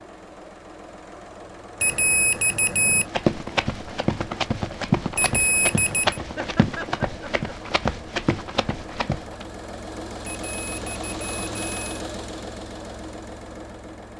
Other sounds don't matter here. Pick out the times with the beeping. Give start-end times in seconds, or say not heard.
1.8-3.1, 5.2-6.2, 10.2-11.9.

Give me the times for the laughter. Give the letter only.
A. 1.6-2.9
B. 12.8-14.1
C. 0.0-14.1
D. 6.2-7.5
D.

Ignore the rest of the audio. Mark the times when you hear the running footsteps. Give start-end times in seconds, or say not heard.
3.0-9.4.